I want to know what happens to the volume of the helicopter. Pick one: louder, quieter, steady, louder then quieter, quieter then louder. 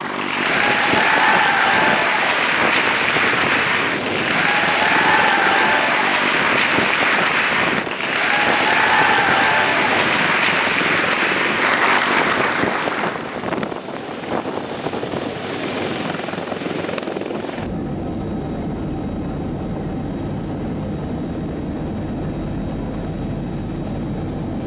steady.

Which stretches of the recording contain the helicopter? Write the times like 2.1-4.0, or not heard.
0.0-24.6.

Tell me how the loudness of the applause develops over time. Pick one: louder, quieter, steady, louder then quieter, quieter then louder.
steady.